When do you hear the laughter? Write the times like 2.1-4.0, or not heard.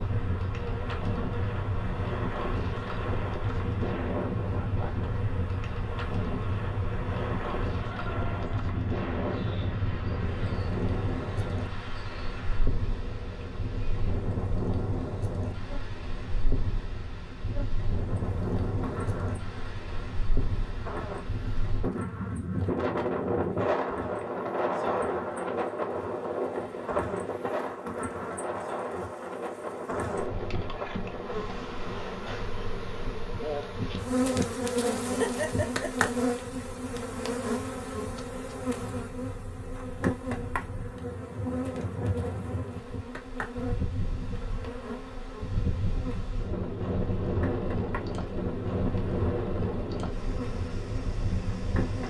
35.0-36.1.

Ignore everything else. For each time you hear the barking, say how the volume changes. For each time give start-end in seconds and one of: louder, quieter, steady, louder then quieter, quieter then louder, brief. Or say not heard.
not heard.